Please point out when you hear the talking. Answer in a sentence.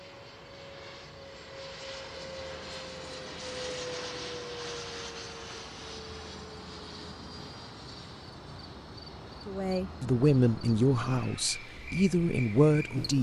You can hear the talking from 9.4 to 13.1 s.